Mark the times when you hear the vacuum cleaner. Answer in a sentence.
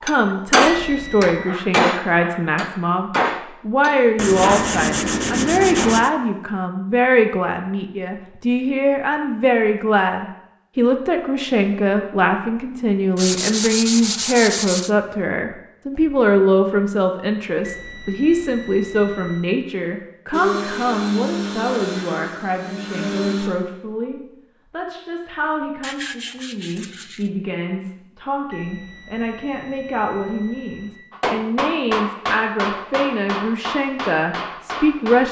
You can hear the vacuum cleaner from 20.3 to 23.5 s.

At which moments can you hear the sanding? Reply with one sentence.
You can hear the sanding from 4.2 to 6.1 s, from 13.2 to 14.9 s and from 25.8 to 27.3 s.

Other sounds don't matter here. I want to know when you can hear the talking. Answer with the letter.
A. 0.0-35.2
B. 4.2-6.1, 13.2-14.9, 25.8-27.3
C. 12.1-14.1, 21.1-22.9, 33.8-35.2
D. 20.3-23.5
A.